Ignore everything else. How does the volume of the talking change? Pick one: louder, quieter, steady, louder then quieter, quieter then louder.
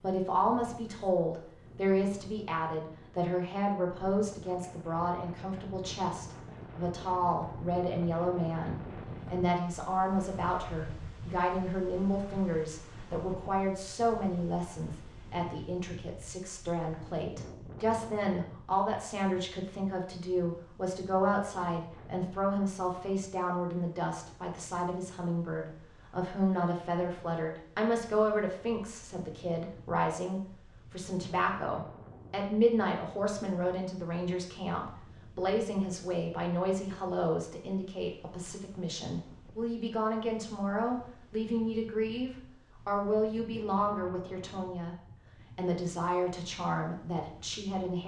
steady.